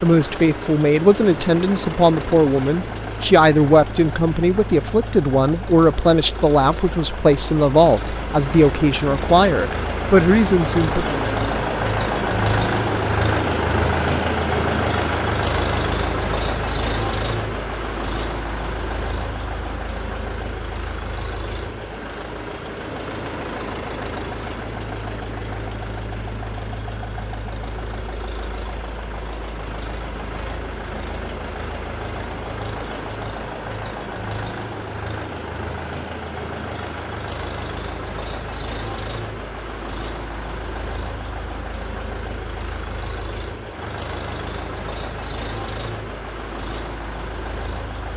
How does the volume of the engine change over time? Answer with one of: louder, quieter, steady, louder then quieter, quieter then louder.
louder then quieter.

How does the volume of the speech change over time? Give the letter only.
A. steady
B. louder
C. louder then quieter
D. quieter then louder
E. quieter
A.